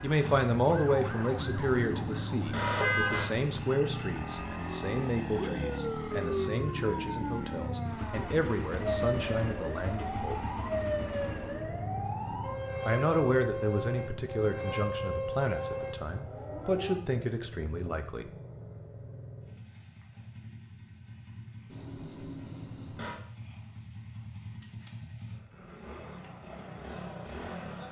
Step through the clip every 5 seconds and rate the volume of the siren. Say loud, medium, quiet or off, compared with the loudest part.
medium, loud, loud, loud, off, off.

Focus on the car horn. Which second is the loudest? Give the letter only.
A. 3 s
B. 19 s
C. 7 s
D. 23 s
A.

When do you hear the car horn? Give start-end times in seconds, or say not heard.
1.2-3.2, 21.6-23.1.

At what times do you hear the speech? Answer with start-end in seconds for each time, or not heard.
0.0-10.4, 12.8-18.3.